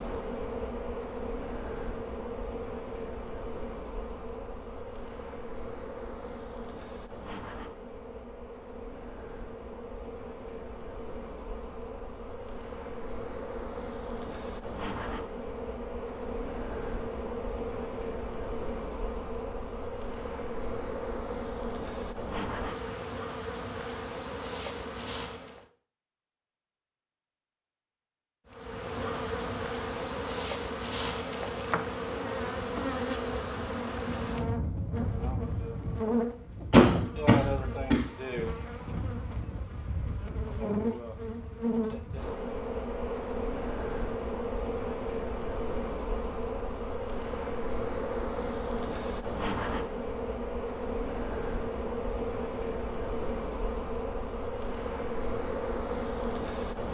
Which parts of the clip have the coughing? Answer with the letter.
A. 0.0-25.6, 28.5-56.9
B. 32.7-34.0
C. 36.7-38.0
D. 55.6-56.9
C.